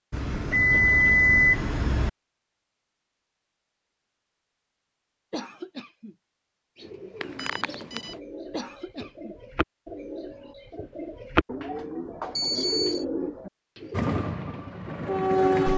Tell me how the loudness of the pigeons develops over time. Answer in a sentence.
The loudness of the pigeons goes up.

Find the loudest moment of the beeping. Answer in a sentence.
The loudest moment of the beeping is at 1 second.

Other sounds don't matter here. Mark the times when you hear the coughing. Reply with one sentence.
The coughing can be heard from 5.3 to 6.2 s and from 8.5 to 9.3 s.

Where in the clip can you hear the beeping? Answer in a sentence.
The beeping can be heard from 0.1 to 2.1 s, from 7.2 to 8.2 s and from 12.3 to 13.1 s.